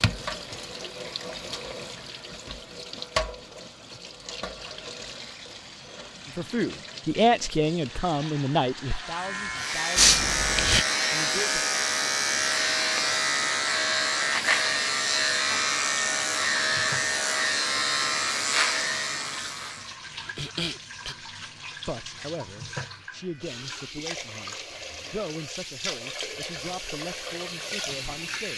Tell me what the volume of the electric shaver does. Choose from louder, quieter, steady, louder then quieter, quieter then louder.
steady.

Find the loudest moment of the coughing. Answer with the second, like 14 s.
10 s.